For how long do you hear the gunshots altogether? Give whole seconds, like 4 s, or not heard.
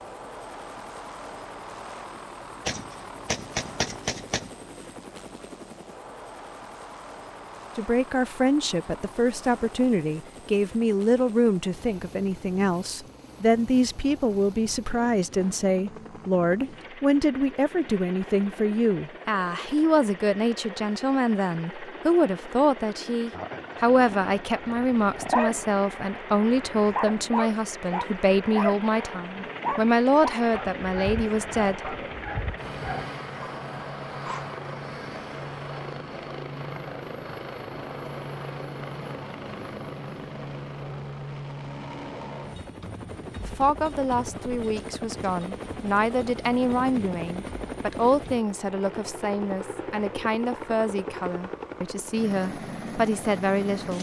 2 s.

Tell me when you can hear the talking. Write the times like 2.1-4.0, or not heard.
7.8-31.9, 43.4-53.9.